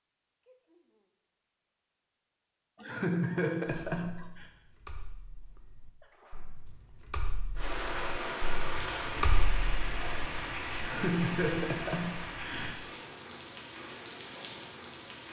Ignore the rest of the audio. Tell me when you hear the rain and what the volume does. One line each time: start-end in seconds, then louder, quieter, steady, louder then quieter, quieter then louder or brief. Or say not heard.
7.5-15.2 quieter.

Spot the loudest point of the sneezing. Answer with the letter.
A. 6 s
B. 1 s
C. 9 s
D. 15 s
A.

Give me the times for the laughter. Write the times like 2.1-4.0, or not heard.
2.8-4.5, 10.8-12.8.